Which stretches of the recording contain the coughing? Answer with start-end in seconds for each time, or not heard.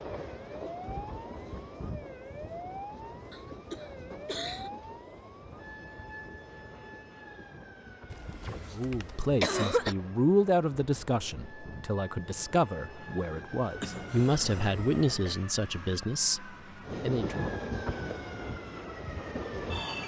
3.3-4.7, 8.1-9.9, 13.8-15.4.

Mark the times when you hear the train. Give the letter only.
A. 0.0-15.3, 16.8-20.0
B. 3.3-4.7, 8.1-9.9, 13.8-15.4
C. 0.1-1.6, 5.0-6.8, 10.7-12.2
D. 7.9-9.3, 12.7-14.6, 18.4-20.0
A.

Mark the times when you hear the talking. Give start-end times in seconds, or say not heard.
8.7-17.4.